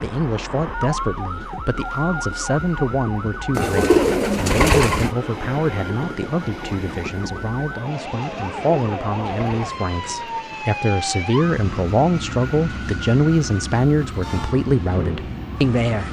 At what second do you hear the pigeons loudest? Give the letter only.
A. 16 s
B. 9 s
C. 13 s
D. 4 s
D.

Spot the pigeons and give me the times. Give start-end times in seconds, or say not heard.
3.5-5.1, 8.3-10.2.